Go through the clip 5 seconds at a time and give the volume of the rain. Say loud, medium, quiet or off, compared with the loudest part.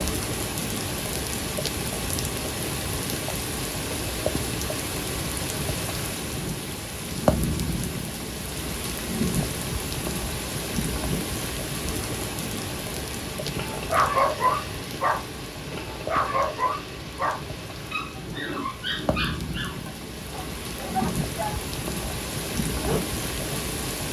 loud, loud, loud, medium, loud.